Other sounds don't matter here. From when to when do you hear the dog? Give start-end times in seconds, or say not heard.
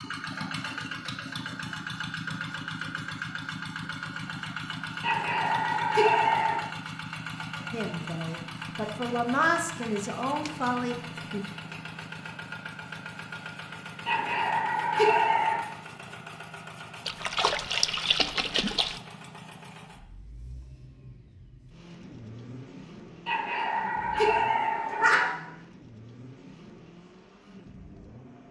5.0-6.6, 14.1-15.6, 23.2-25.2.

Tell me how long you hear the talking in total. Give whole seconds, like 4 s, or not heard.
4 s.